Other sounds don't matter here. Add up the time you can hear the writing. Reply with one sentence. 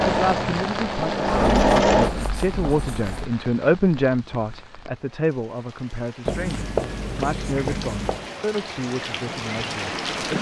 The writing can be heard for 4 seconds in total.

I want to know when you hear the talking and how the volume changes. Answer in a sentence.
The talking can be heard from 0.0 to 10.3 s, getting louder then quieter.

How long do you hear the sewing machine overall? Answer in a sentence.
You can hear the sewing machine for 2 seconds altogether.